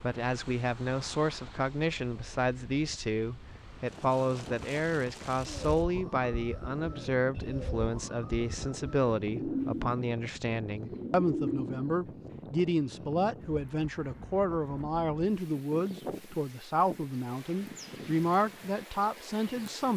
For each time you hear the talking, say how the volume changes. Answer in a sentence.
The talking can be heard from 0.0 to 19.9 s, at a steady volume.